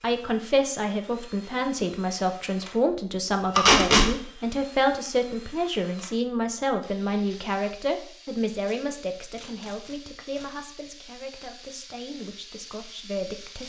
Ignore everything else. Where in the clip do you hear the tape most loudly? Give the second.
4 s.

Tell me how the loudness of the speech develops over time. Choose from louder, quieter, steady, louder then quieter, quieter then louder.
quieter.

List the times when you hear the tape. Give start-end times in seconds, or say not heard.
3.5-4.0, 8.6-10.5.